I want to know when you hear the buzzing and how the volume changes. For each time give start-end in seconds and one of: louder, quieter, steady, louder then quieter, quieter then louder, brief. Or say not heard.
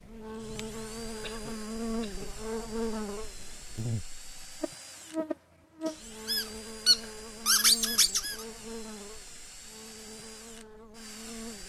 0.0-11.6 quieter.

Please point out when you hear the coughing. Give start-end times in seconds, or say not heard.
1.2-2.4.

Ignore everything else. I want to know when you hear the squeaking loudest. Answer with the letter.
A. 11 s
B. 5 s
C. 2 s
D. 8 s
D.